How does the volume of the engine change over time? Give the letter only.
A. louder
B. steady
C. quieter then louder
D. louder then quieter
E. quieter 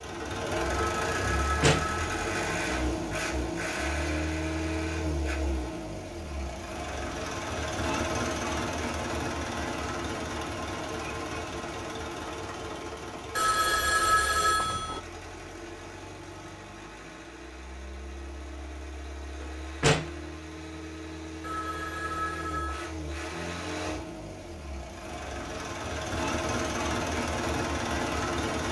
C.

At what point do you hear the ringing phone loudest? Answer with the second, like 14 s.
14 s.